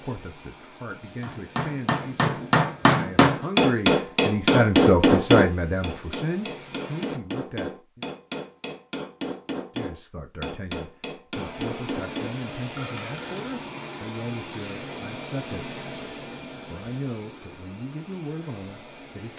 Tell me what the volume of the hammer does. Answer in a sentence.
The volume of the hammer goes down.